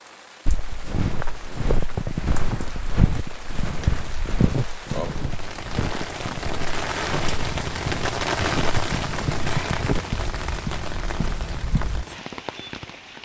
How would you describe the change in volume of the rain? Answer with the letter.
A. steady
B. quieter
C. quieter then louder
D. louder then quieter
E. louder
D.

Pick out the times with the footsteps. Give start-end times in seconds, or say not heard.
0.5-12.1.